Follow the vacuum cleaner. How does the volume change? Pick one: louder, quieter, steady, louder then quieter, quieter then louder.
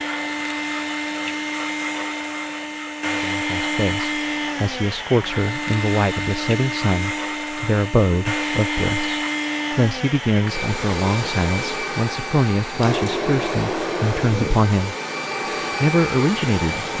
steady.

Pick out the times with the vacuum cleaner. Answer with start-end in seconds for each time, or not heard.
0.0-16.9.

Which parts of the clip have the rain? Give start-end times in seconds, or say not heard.
not heard.